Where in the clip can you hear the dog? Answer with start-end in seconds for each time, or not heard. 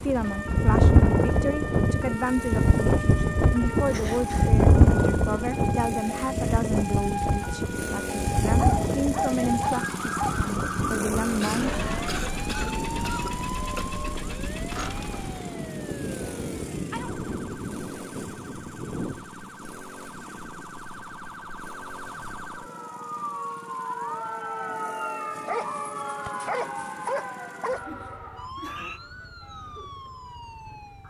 8.6-10.4, 25.4-27.9.